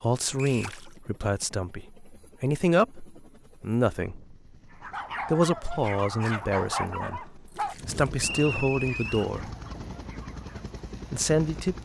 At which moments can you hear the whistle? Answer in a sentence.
You can hear the whistle from 0.3 to 0.8 s and from 8.2 to 9.3 s.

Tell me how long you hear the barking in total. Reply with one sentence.
You can hear the barking for 6 seconds altogether.